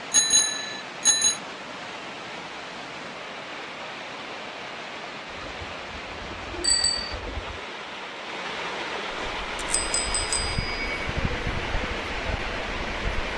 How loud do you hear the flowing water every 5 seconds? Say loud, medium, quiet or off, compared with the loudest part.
medium, loud, loud.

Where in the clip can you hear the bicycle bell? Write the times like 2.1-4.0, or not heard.
0.1-1.4, 6.6-7.2, 9.2-10.8.